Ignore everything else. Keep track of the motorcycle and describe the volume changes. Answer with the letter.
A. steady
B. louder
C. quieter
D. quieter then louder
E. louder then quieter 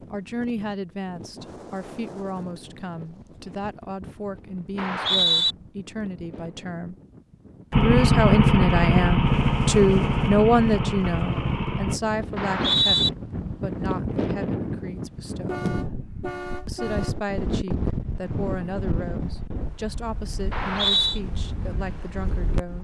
C.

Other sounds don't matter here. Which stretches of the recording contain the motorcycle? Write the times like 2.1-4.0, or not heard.
7.7-11.9.